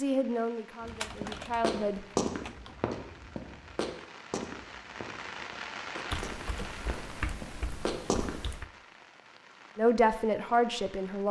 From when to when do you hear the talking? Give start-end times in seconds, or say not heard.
0.0-2.0, 9.8-11.2.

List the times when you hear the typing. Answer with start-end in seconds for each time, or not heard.
0.8-2.8, 6.1-8.7.